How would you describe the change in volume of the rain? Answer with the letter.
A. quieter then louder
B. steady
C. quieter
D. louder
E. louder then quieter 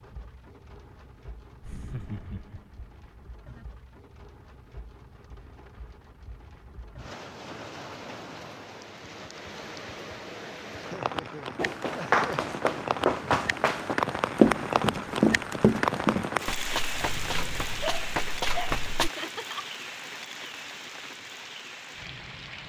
E.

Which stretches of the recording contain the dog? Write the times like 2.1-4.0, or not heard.
16.9-18.9.